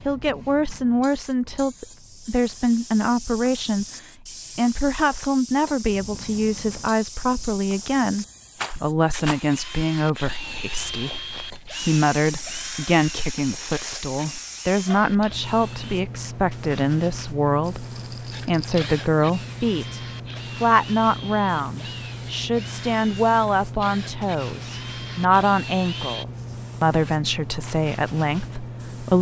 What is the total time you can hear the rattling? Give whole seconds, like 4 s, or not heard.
2 s.